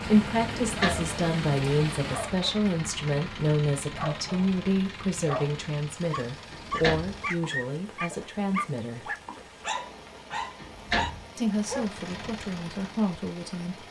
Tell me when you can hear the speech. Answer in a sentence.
You can hear the speech from 0.0 to 9.2 s and from 11.3 to 13.8 s.